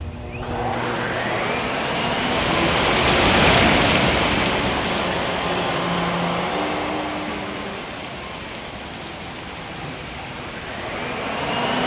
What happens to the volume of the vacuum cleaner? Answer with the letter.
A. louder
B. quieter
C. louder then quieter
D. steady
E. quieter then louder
B.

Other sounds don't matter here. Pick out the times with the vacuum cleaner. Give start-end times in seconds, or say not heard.
0.0-11.8.